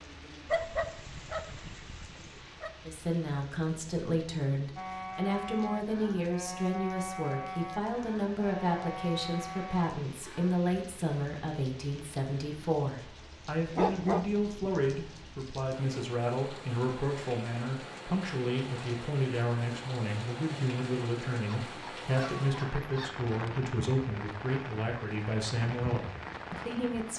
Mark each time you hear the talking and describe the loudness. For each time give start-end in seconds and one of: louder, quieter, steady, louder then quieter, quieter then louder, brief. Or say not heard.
2.9-27.1 steady.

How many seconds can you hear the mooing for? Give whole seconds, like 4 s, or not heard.
6 s.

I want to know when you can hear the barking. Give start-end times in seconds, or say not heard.
0.5-2.7, 13.7-14.7, 21.4-23.2.